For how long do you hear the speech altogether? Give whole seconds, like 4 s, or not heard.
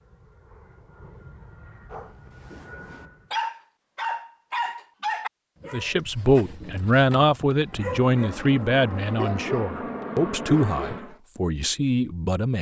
7 s.